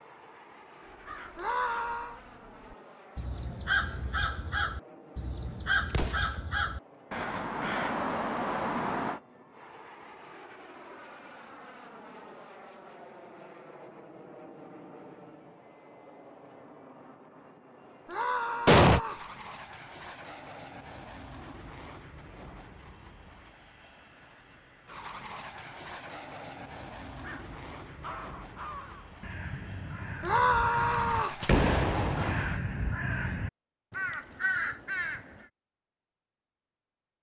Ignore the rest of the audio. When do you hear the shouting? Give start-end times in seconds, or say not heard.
1.4-2.2, 18.1-19.2, 30.2-31.4.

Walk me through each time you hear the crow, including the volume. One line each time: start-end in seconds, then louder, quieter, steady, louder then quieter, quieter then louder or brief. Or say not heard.
0.8-9.2 louder
27.2-35.5 louder.